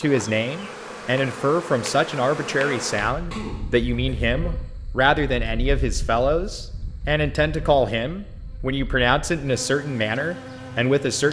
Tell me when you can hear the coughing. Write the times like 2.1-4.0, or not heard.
3.3-4.2.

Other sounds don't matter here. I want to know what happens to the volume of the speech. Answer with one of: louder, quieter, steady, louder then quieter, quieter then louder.
steady.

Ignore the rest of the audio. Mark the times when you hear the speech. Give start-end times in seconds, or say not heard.
0.0-11.2.